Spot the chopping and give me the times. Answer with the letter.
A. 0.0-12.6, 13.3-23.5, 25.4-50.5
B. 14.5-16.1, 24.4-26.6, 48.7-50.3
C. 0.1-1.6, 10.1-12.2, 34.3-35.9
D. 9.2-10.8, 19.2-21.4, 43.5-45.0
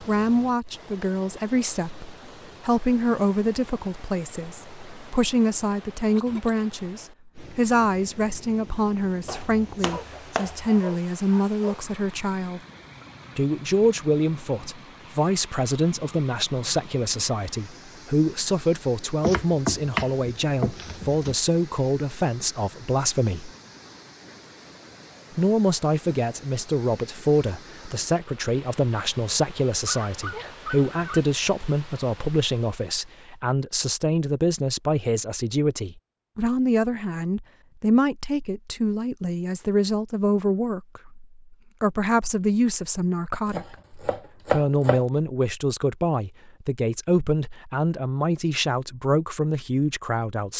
D.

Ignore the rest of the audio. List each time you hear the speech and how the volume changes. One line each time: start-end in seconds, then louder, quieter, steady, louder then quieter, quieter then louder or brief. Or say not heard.
0.0-12.6 steady
13.3-23.5 steady
25.4-50.5 steady.